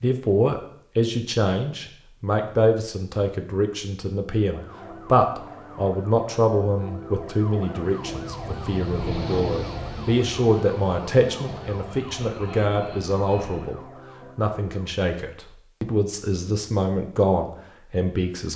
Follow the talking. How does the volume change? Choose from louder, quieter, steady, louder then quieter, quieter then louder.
steady.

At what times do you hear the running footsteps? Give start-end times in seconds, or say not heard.
not heard.